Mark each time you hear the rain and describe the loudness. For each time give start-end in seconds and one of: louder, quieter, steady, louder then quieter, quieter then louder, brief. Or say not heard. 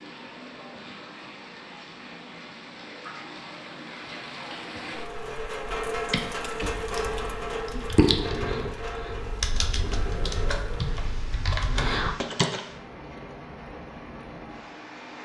0.0-15.2 louder then quieter.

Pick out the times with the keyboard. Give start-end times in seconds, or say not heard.
6.1-12.7.